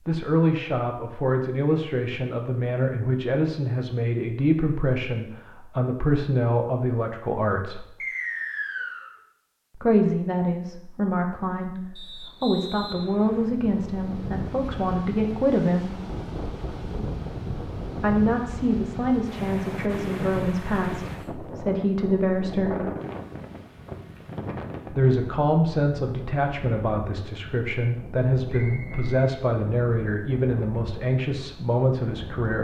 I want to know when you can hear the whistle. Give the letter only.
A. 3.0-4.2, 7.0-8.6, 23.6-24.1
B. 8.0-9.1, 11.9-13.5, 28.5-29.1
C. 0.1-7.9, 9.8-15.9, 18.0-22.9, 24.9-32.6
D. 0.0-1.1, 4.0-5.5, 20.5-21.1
B.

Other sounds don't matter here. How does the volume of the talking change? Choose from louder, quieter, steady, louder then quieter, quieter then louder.
steady.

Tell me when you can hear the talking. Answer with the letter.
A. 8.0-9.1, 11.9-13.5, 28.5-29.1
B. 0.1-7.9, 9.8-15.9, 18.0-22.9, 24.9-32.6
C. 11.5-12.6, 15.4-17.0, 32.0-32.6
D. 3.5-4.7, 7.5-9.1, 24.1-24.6
B.